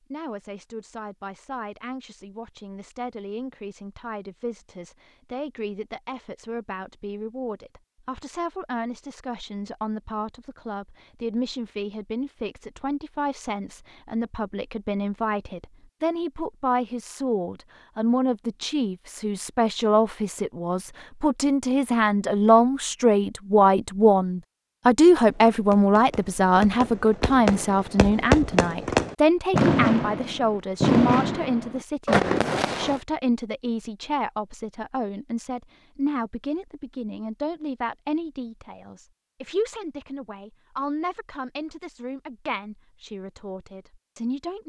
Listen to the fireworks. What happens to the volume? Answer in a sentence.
The volume of the fireworks goes up.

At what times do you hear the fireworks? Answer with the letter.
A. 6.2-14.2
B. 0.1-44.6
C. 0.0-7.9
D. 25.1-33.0
D.